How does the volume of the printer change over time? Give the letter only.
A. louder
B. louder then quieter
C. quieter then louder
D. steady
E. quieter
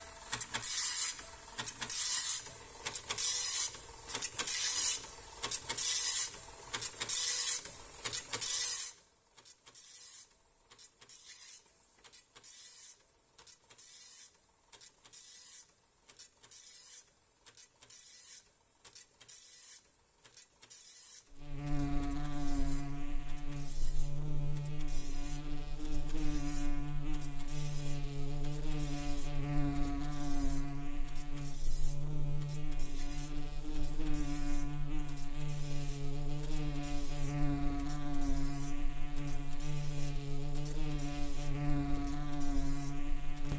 E.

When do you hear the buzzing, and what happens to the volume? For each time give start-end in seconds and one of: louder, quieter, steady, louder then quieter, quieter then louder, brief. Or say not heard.
21.3-43.5 steady.